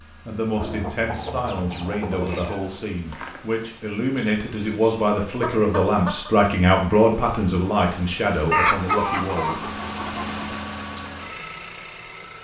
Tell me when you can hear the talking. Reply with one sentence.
You can hear the talking from 0.1 to 9.6 s.